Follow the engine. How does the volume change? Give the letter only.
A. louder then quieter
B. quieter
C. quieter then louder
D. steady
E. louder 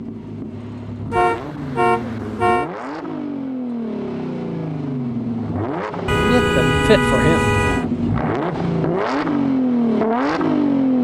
E.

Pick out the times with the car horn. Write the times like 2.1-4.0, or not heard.
1.1-2.7, 6.0-7.8.